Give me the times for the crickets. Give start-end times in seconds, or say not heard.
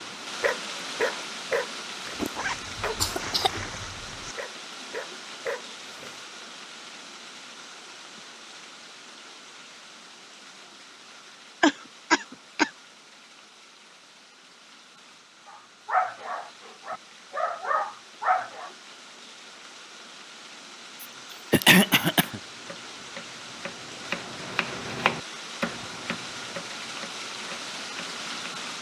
not heard.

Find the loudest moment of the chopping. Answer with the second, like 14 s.
25 s.